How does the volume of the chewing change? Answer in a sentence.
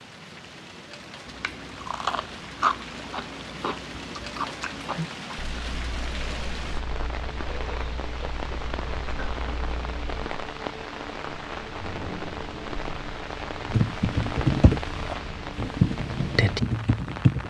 The volume of the chewing goes down.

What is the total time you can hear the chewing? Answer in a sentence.
You can hear the chewing for 9 seconds altogether.